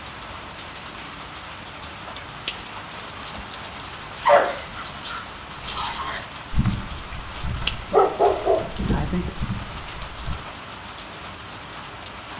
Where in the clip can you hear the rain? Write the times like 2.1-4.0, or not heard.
0.0-12.3.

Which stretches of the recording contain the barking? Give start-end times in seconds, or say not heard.
3.9-10.3.